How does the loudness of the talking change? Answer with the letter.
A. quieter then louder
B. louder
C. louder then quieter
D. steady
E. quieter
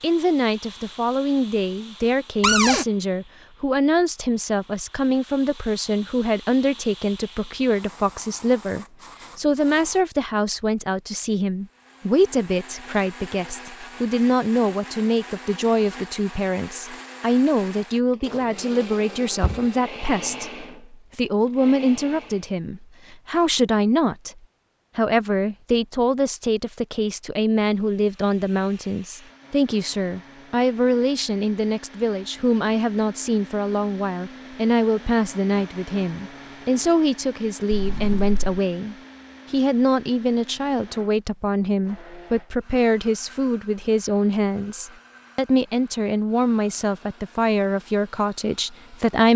D.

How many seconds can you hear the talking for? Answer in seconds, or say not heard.
49 s.